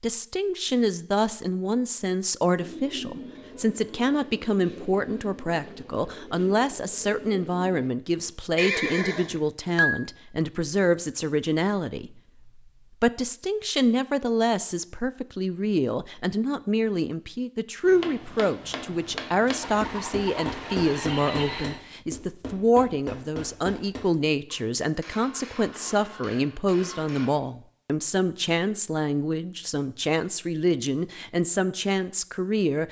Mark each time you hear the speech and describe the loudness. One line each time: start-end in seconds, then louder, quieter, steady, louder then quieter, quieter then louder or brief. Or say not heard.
0.0-32.8 steady.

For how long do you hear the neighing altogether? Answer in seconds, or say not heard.
4 s.